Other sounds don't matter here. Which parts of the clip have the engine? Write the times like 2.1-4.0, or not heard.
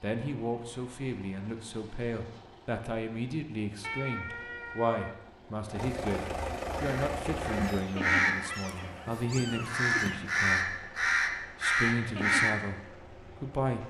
0.0-13.8.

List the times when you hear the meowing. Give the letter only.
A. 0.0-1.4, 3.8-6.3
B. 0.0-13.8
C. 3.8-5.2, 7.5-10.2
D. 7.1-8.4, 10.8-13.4
C.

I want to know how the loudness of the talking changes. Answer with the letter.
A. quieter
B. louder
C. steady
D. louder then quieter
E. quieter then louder
C.